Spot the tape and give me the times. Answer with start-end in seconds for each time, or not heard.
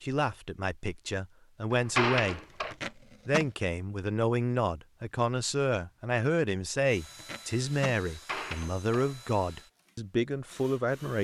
2.4-3.5, 6.9-8.0.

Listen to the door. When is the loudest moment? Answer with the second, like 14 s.
2 s.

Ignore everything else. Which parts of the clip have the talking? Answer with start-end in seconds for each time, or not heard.
0.0-2.4, 3.2-11.1.